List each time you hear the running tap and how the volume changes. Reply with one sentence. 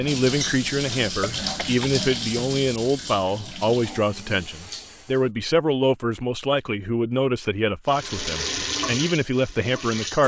The running tap can be heard from 0.0 to 5.3 s, getting quieter; and briefly from 7.8 to 10.2 s.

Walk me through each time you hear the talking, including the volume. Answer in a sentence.
The talking can be heard from 0.0 to 10.2 s, at a steady volume.